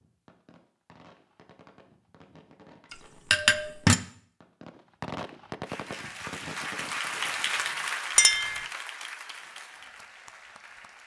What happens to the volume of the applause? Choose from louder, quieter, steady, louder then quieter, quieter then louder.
louder then quieter.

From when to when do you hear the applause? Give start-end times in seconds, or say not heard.
5.6-11.0.